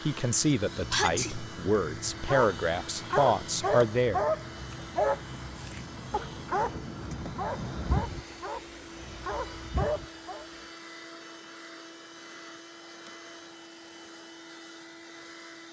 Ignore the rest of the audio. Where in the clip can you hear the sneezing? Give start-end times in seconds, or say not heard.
0.3-1.4.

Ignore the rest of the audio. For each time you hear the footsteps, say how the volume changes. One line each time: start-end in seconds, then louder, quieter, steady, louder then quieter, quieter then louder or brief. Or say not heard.
not heard.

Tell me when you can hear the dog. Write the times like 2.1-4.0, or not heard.
2.2-10.4.